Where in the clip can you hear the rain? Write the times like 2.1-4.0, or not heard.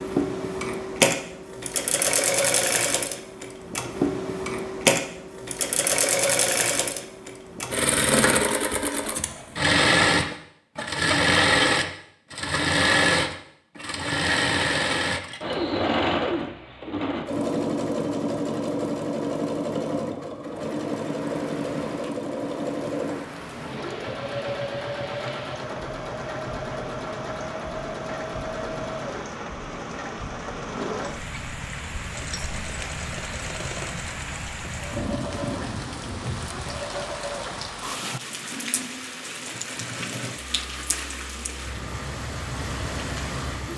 20.4-43.7.